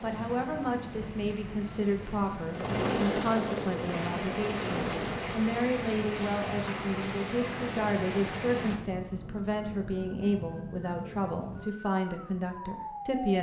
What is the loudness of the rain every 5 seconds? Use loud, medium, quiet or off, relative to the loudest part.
medium, loud, off.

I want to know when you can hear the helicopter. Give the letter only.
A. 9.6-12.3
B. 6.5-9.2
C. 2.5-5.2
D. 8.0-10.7
C.